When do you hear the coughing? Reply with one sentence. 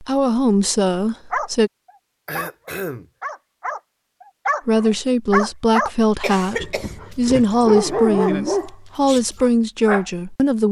You can hear the coughing from 2.2 to 3.0 s and from 6.2 to 7.0 s.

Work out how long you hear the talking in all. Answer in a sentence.
The talking can be heard for 8 seconds in total.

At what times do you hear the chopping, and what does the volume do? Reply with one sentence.
You can't hear the chopping here.